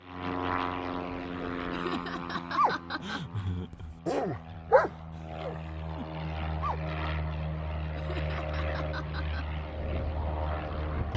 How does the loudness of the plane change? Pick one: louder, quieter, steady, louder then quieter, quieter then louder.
quieter then louder.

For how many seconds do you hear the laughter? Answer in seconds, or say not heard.
3 s.